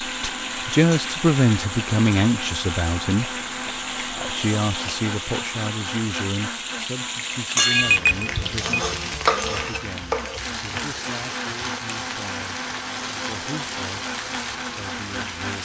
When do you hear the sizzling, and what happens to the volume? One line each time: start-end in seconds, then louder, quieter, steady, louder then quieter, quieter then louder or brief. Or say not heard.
0.0-15.6 louder then quieter.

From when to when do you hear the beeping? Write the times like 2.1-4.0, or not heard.
7.8-8.7.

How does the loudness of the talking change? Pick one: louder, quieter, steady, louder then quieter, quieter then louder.
quieter.